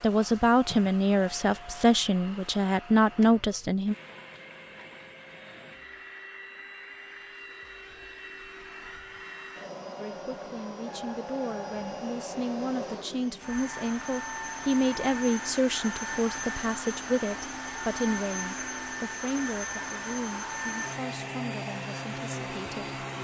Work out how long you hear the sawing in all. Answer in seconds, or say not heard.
not heard.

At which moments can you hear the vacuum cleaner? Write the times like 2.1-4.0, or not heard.
0.0-23.1.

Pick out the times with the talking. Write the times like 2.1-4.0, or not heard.
0.0-4.0, 9.9-22.9.